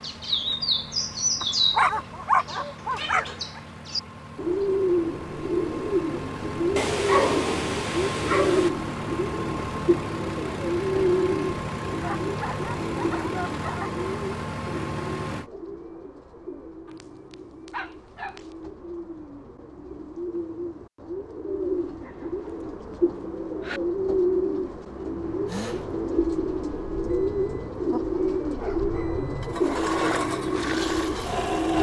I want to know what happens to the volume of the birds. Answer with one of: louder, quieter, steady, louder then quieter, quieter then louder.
quieter then louder.